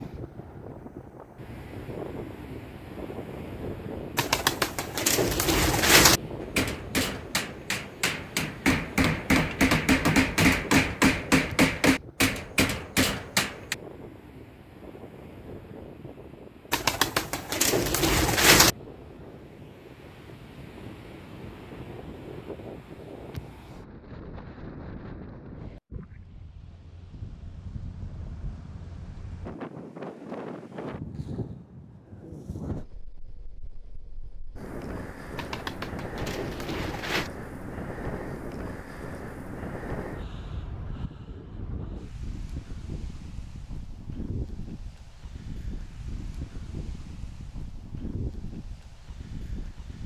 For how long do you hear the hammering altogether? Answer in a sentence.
The hammering can be heard for 7 seconds in total.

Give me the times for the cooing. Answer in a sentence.
The cooing can be heard from 4.2 to 6.2 s, from 16.7 to 18.7 s and from 35.4 to 37.3 s.